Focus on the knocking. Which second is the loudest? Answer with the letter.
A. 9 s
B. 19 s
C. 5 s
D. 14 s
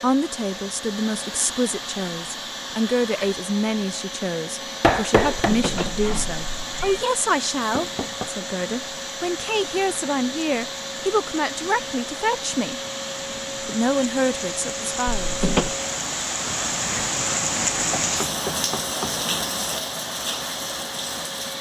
C.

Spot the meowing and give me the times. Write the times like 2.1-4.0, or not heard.
5.3-7.0, 15.1-15.8.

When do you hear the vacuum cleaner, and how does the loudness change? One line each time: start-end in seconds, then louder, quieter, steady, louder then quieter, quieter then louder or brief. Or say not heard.
0.0-21.5 steady.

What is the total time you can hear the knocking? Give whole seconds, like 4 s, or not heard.
3 s.